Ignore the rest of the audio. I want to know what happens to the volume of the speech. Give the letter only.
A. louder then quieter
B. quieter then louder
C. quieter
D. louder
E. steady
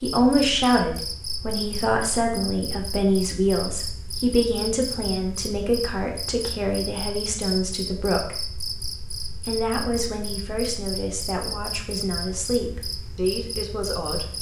C.